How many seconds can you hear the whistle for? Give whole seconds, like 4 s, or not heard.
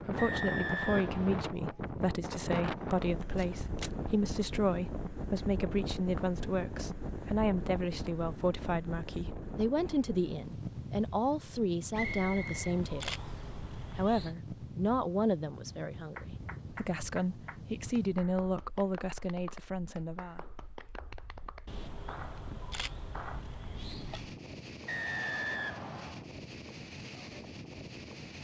4 s.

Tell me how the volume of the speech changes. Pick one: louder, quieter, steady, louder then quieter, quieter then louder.
steady.